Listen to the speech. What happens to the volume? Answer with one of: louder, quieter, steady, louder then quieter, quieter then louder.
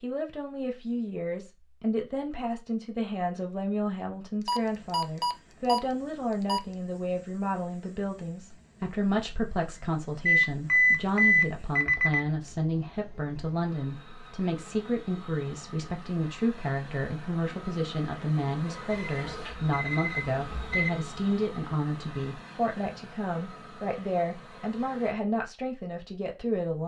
steady.